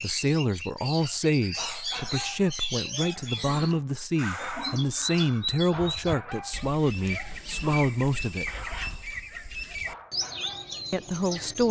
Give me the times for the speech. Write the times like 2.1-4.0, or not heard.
0.0-8.4, 10.9-11.6.